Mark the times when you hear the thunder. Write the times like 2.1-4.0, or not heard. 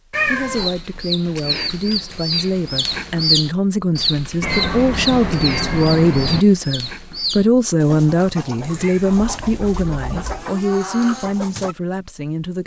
not heard.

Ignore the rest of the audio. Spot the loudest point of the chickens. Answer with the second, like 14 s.
3 s.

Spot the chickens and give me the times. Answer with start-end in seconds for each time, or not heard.
0.2-11.8.